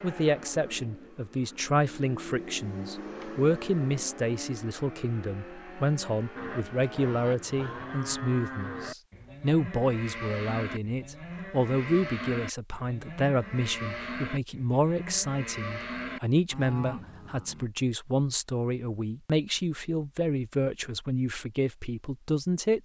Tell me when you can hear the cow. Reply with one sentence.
The cow can be heard from 6.3 to 17.7 s.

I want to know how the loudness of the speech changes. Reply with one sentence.
The loudness of the speech stays about the same.